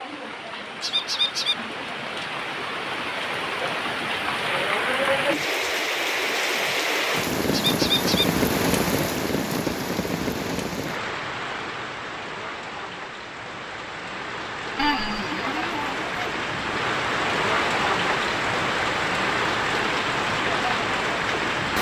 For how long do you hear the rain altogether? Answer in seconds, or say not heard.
22 s.